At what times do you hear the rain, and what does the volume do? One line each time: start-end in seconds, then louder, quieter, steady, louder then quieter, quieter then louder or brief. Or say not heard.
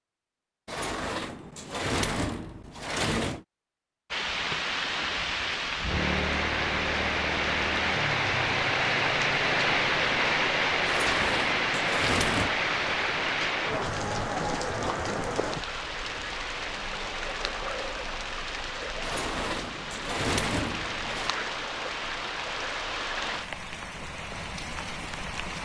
4.1-25.6 quieter.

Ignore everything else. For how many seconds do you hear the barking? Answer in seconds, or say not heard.
not heard.